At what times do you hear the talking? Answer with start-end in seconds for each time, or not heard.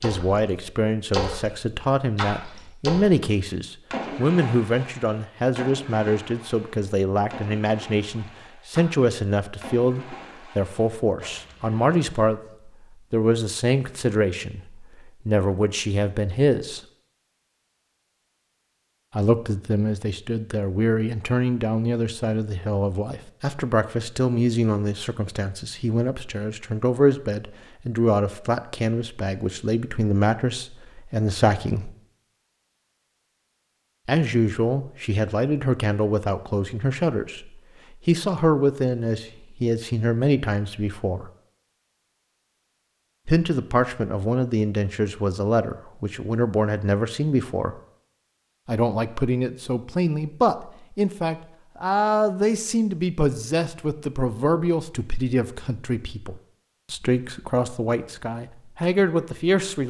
0.0-16.8, 19.1-31.9, 34.0-41.3, 43.2-47.8, 48.6-59.8.